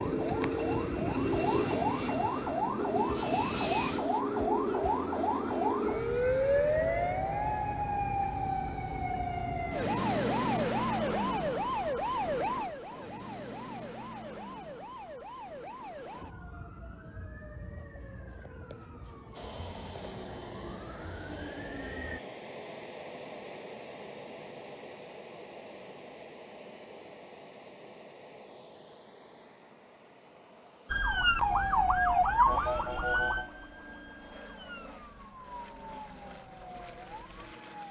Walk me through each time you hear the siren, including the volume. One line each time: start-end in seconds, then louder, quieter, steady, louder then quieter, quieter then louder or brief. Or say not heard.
0.0-22.2 quieter
30.9-37.8 quieter.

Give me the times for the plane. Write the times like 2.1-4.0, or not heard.
0.0-4.2, 19.3-37.8.